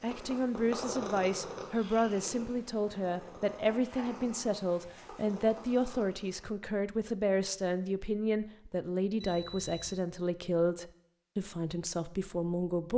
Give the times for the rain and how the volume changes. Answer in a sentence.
The rain can't be heard in this clip.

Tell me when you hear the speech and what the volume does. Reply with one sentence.
You can hear the speech from 0.0 to 12.9 s, at a steady volume.